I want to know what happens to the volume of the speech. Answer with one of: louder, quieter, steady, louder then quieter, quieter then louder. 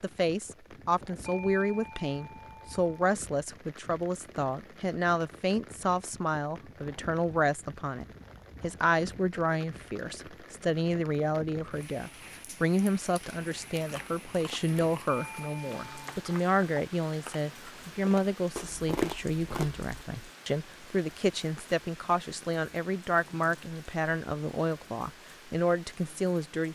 steady.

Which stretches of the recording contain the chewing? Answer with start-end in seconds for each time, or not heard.
13.8-19.9.